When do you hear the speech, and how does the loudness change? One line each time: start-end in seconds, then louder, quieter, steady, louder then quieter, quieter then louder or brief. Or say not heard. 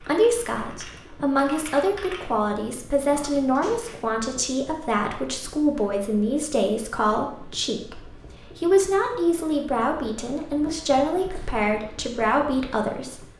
0.0-13.2 steady.